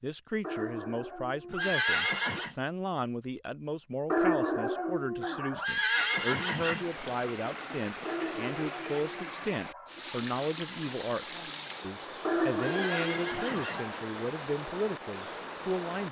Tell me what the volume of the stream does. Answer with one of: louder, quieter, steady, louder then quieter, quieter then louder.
steady.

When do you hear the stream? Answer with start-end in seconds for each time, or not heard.
5.8-16.0.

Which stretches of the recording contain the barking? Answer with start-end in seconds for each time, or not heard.
0.4-2.5, 4.1-5.7, 8.1-10.1, 12.2-14.0.